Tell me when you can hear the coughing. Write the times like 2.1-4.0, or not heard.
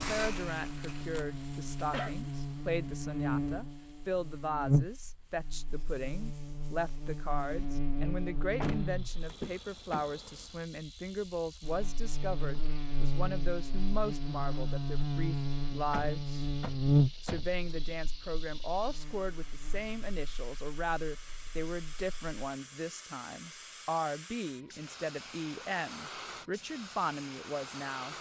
1.0-2.1.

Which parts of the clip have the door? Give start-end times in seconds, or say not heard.
8.6-10.5, 15.9-17.9.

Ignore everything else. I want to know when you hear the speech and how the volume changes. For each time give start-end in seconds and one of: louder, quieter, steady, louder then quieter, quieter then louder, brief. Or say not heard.
0.0-16.4 steady
17.2-28.1 steady.